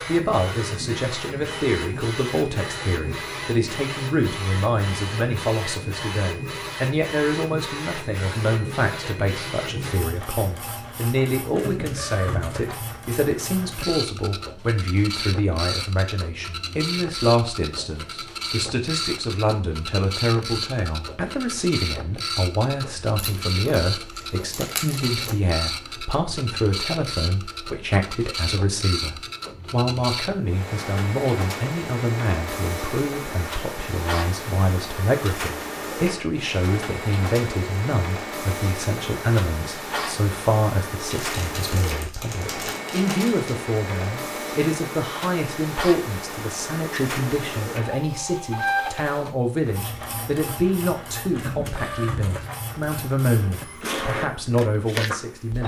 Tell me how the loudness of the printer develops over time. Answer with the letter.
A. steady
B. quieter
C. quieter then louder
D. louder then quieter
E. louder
A.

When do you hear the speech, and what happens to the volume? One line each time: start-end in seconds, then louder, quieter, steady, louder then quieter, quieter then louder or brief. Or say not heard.
0.1-55.6 steady.